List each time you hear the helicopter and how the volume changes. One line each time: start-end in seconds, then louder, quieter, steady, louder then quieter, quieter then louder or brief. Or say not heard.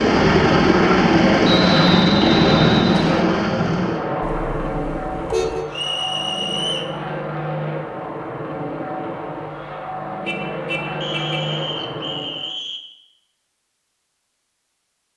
0.0-12.6 quieter.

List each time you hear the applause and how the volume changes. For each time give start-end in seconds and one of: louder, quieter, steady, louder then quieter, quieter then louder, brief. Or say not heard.
not heard.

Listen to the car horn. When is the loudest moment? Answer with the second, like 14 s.
5 s.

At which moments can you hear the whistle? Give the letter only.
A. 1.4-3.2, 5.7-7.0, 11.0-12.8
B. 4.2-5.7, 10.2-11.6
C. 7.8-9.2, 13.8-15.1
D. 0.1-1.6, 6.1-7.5
A.